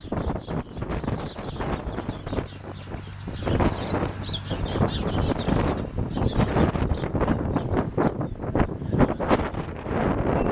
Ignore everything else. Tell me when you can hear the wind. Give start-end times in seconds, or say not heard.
0.0-10.4.